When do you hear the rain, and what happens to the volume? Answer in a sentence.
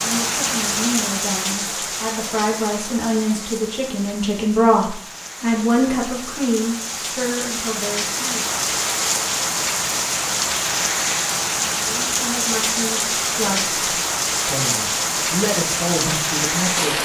You can hear the rain from 0.0 to 16.9 s, getting quieter then louder.